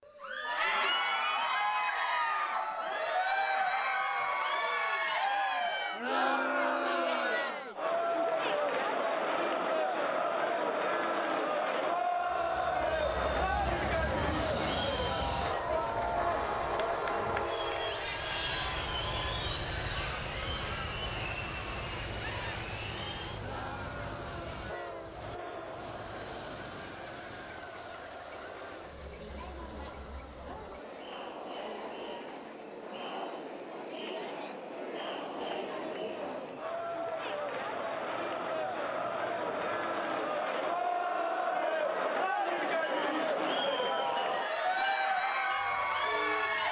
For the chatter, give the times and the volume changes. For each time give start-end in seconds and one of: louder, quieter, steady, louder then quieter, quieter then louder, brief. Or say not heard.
0.1-46.6 quieter then louder.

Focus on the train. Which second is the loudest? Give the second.
17 s.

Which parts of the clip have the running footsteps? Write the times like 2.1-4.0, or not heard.
not heard.